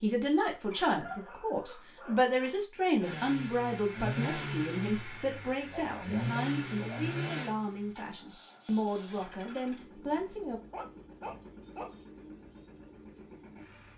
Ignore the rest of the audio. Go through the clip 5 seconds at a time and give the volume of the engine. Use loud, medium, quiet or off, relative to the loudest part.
loud, loud, quiet.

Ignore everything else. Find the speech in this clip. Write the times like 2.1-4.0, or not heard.
0.0-10.6.